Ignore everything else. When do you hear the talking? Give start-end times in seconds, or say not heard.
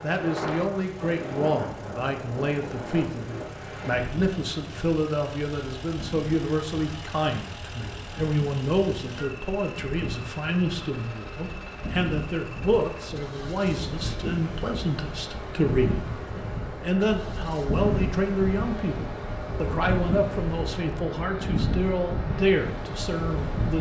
0.0-16.1, 16.8-23.7.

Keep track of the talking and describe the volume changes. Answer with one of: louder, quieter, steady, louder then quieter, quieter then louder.
steady.